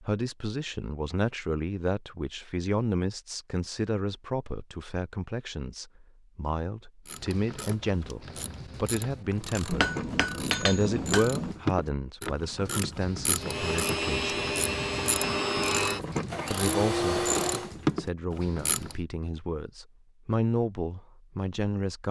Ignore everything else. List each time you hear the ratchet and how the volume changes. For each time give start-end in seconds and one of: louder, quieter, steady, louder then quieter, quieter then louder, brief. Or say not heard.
7.0-19.0 louder.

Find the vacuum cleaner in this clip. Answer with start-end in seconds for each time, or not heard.
13.3-17.7.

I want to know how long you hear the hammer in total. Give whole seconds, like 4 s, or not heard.
2 s.